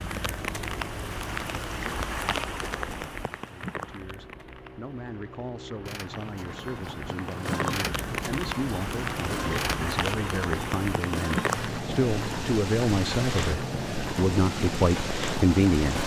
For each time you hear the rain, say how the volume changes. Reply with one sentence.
The rain can be heard from 0.0 to 16.0 s, getting quieter then louder.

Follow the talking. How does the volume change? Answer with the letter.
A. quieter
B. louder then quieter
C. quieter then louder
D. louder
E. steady
D.